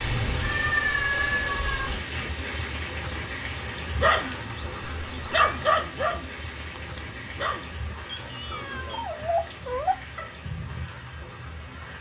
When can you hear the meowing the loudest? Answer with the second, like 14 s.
1 s.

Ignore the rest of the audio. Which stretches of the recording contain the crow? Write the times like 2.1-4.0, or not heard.
9.7-11.9.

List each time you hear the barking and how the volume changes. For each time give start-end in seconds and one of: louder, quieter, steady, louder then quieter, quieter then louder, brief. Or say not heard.
4.0-10.2 quieter then louder.